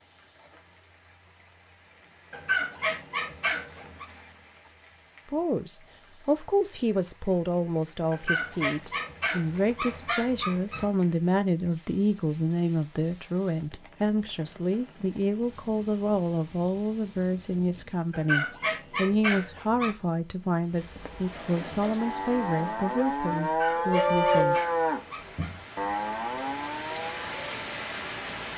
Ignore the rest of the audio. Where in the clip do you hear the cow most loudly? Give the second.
24 s.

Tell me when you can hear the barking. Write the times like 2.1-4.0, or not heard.
2.3-4.0, 8.1-10.9, 18.1-19.9, 23.4-25.6.